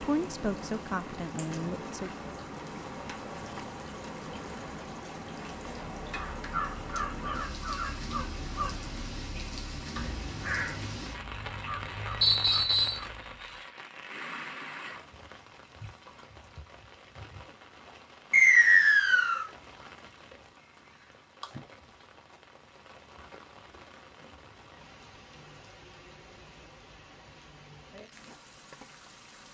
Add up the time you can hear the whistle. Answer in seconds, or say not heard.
2 s.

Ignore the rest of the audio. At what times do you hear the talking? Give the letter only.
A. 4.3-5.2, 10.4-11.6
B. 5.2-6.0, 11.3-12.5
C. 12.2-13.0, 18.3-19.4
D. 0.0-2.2
D.